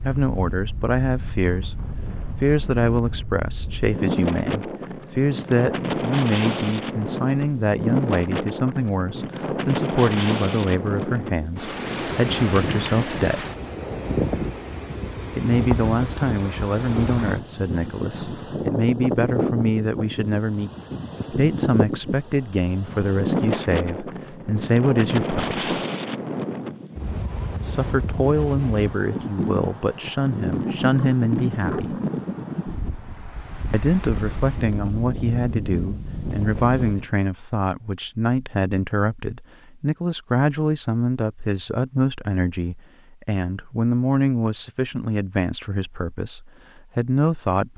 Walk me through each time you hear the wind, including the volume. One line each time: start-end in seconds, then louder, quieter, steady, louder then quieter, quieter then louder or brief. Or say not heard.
0.0-37.1 steady.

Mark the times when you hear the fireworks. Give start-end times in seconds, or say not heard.
not heard.